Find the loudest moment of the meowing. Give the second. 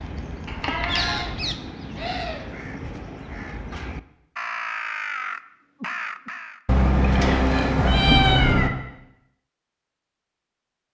8 s.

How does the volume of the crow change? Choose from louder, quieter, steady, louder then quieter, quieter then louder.
quieter then louder.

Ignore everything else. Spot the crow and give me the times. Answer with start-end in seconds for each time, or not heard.
0.0-6.6.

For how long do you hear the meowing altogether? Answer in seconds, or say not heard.
3 s.